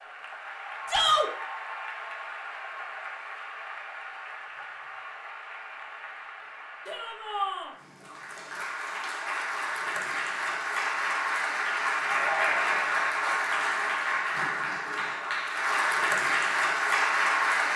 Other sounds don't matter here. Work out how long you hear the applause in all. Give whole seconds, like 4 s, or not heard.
18 s.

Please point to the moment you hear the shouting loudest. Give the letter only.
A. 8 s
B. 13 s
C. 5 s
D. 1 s
D.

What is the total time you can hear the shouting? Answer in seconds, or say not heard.
2 s.